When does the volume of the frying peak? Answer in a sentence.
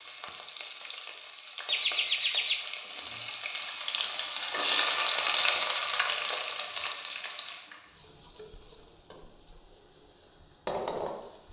The loudest moment of the frying is at 5 seconds.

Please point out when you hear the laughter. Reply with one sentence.
The laughter can be heard from 1.6 to 2.6 s.